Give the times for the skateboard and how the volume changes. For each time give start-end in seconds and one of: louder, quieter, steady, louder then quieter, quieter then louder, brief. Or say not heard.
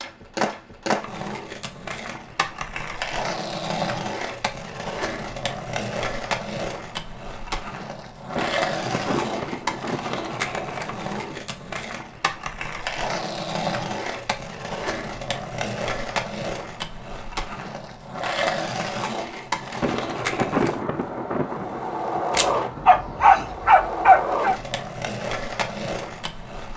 0.0-26.7 steady.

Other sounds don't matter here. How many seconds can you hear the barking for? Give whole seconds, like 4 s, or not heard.
2 s.